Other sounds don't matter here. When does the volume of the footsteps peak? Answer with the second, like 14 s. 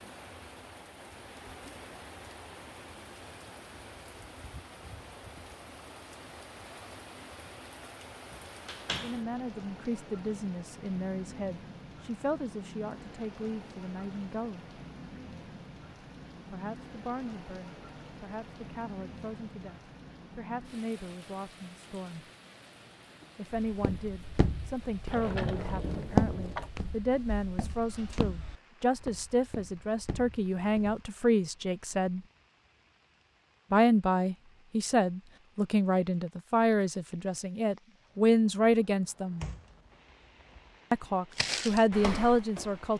26 s.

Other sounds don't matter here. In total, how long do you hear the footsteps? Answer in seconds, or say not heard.
9 s.